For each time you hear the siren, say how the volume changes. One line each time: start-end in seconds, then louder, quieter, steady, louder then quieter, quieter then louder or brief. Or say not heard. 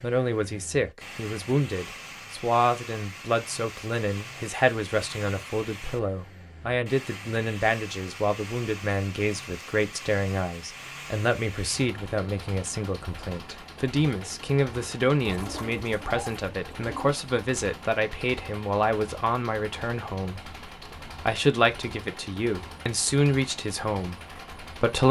not heard.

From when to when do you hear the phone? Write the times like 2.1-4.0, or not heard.
not heard.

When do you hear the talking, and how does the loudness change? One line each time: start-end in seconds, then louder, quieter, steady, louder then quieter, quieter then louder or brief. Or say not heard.
0.0-25.0 steady.